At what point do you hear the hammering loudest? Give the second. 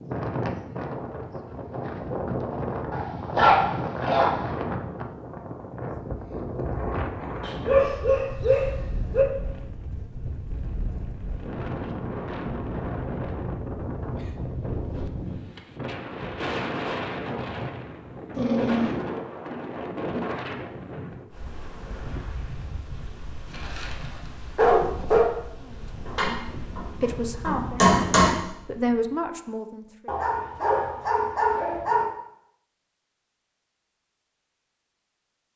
28 s.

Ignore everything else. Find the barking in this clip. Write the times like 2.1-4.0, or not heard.
2.9-4.5, 7.4-9.2, 18.4-18.9, 23.5-23.9, 24.6-25.2, 30.1-32.0.